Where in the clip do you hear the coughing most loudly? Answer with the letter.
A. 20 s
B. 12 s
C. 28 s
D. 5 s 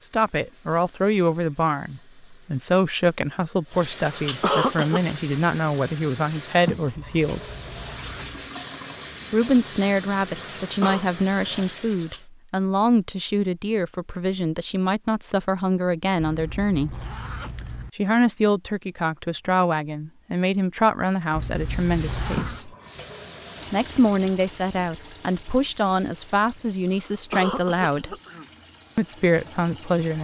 D.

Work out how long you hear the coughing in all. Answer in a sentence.
The coughing can be heard for 3 seconds in total.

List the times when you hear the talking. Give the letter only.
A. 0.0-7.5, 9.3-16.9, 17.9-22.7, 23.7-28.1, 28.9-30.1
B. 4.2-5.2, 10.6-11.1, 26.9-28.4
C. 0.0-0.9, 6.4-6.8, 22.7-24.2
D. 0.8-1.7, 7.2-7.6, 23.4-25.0
A.